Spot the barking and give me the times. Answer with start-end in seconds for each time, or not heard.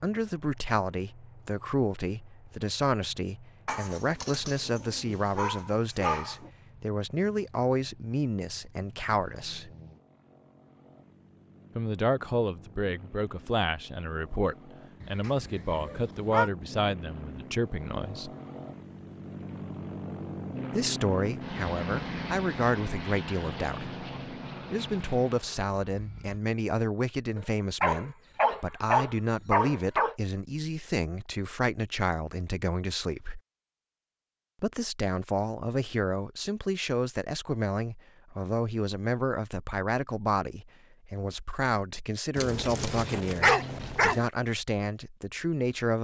3.6-6.5, 15.0-16.5, 27.4-30.1, 42.4-44.2.